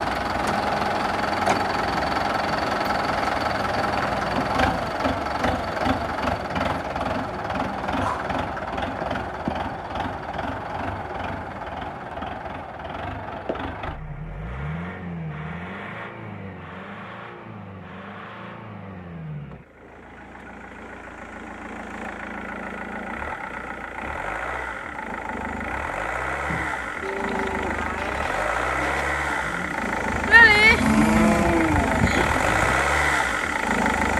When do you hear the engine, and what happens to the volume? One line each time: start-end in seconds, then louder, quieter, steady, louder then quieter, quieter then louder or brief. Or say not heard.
0.0-34.1 quieter then louder.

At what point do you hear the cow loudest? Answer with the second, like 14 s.
31 s.